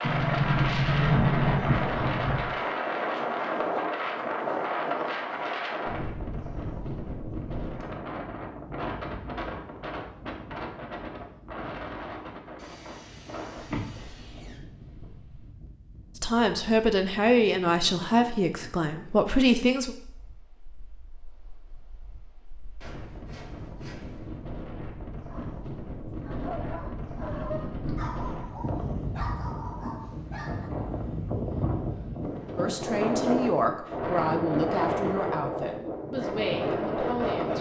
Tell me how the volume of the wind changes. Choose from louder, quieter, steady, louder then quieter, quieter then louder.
quieter then louder.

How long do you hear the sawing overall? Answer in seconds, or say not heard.
4 s.